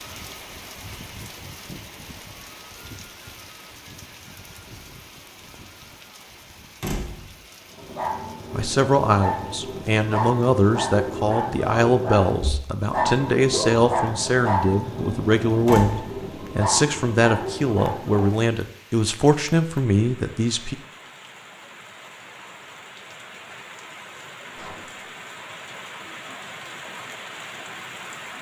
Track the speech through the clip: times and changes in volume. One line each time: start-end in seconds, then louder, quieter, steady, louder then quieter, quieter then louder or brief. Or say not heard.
8.5-20.8 steady.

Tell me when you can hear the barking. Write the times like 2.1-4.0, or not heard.
7.7-18.4.